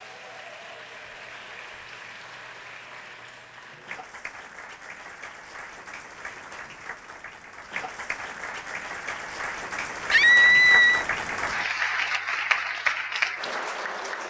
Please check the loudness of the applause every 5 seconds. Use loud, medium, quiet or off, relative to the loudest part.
quiet, medium, loud.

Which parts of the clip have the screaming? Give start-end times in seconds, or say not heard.
10.1-11.1.